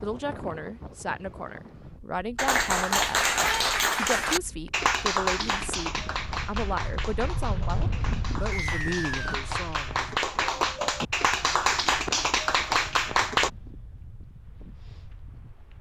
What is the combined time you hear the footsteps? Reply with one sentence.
The footsteps can't be heard in this clip.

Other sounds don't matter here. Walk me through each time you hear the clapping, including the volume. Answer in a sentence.
You can hear the clapping from 2.4 to 13.5 s, getting quieter then louder.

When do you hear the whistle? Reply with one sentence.
The whistle can be heard from 8.5 to 9.4 s.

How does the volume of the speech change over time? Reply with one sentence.
The volume of the speech stays about the same.